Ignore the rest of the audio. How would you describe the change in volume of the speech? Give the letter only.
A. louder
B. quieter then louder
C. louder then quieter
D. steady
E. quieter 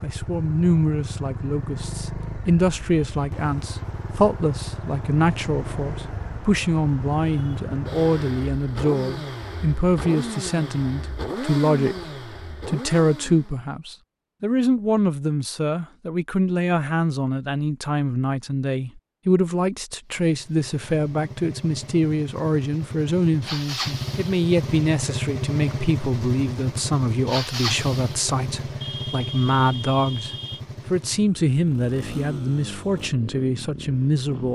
D.